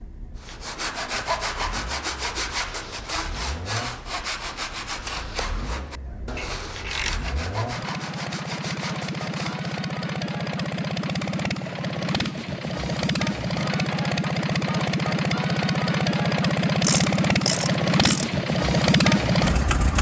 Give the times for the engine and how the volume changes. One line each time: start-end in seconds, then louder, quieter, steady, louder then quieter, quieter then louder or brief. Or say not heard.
0.0-19.9 louder.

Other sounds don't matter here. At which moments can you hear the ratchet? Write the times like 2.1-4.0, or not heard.
6.3-7.4, 16.8-18.4.